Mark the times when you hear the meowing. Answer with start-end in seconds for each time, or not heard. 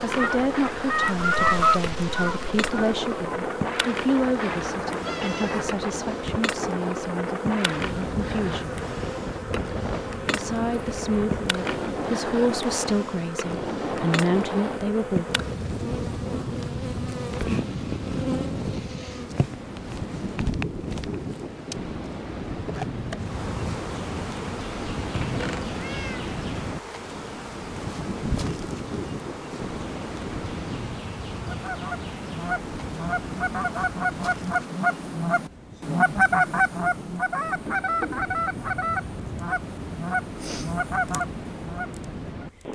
4.7-6.4, 25.1-26.2.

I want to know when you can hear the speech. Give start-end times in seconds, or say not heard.
0.0-8.8, 10.3-15.2.